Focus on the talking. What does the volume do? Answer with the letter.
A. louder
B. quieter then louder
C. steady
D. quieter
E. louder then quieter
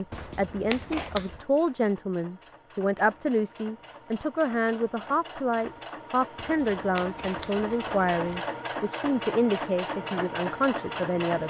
C.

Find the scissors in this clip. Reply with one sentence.
You can hear the scissors from 0.1 to 1.4 s and from 6.3 to 8.4 s.